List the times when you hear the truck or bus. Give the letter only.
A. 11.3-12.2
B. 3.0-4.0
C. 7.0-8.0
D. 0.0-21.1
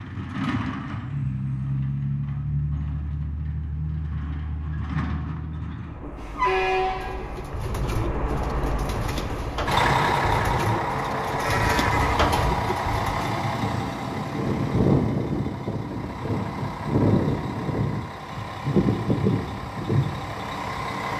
D.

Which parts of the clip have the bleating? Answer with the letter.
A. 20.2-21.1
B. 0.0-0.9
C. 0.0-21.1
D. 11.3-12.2
D.